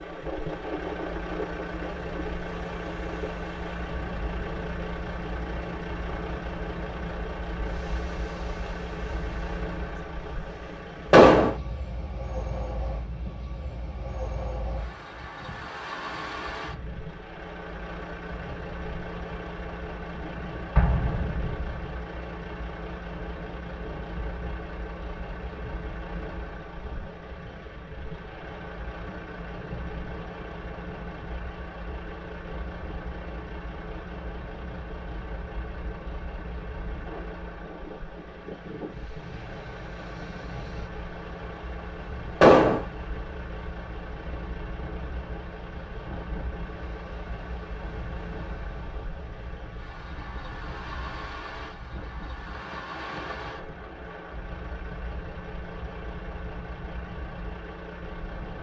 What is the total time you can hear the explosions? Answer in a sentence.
You can hear the explosions for 2 seconds altogether.